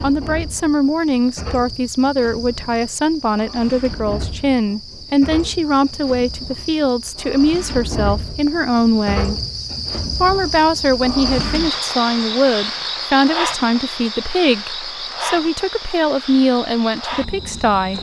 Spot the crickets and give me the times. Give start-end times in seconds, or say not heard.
0.0-17.9.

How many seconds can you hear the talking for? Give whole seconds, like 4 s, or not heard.
17 s.